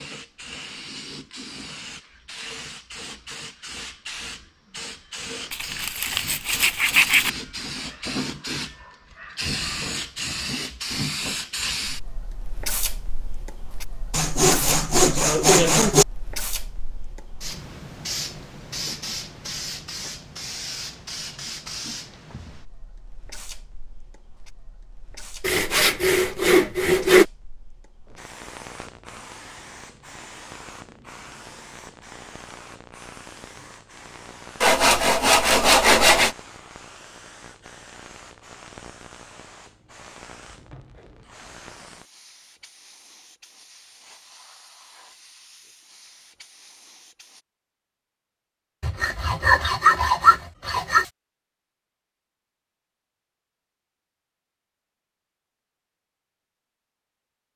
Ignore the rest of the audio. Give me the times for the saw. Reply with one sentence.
The saw can be heard from 5.5 to 7.3 s, from 14.1 to 16.1 s, from 25.4 to 27.2 s, from 34.6 to 36.4 s and from 48.8 to 51.0 s.